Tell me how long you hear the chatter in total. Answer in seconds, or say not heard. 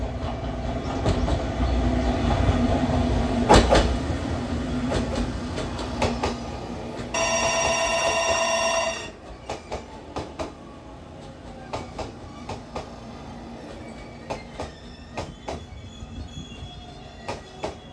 not heard.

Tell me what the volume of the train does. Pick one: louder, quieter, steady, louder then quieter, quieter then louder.
quieter.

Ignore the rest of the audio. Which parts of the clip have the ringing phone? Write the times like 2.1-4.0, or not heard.
7.1-9.1.